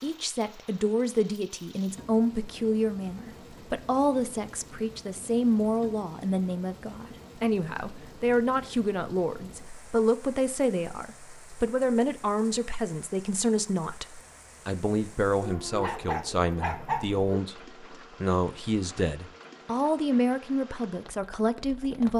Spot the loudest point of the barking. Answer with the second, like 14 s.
17 s.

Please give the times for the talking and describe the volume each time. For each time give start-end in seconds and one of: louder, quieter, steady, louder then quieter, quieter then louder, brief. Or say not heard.
0.0-22.1 steady.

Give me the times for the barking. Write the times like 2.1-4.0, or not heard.
15.4-17.2.